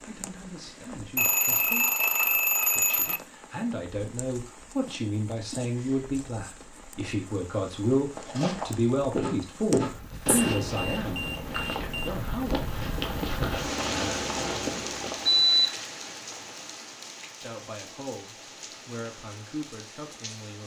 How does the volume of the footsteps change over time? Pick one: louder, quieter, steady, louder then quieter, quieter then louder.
quieter then louder.